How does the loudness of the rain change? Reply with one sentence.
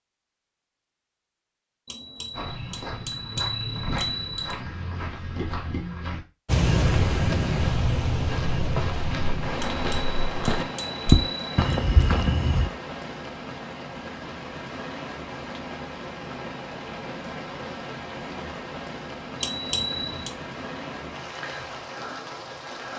The loudness of the rain goes down.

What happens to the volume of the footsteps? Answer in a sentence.
The volume of the footsteps goes up.